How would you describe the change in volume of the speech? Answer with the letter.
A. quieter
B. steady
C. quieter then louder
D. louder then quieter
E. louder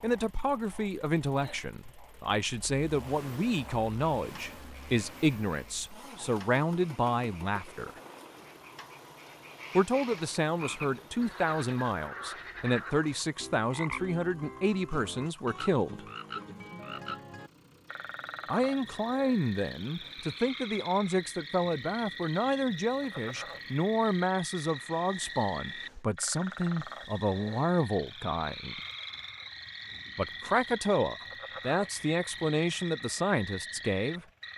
B.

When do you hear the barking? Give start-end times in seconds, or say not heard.
not heard.